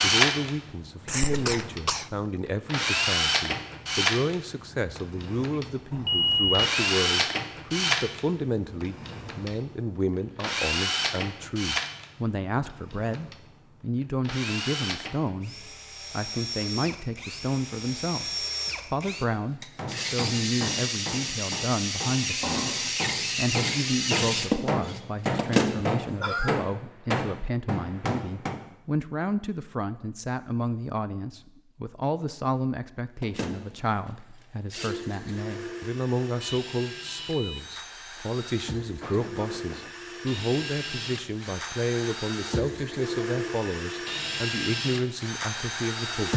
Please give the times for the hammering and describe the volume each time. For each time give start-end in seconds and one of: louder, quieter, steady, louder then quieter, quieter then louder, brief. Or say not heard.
19.8-28.6 louder.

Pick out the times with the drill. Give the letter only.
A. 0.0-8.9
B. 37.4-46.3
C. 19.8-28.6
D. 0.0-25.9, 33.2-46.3
D.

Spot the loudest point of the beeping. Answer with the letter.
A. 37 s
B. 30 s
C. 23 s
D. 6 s
D.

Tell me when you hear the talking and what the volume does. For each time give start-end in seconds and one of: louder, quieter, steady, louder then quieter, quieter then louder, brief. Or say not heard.
0.0-46.3 steady.